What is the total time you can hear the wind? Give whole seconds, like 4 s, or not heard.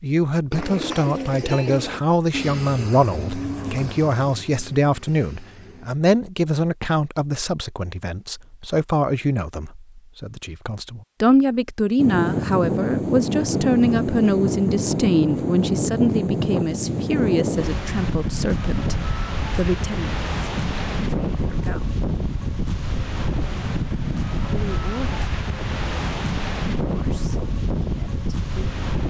17 s.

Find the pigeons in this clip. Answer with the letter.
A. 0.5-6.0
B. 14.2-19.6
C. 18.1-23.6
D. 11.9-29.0
A.